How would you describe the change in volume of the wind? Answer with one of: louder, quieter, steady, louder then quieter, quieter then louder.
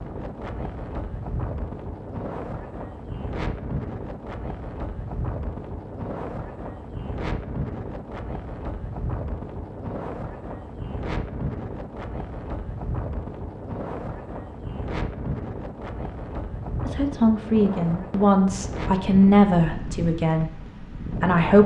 steady.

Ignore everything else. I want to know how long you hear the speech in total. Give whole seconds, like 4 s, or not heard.
5 s.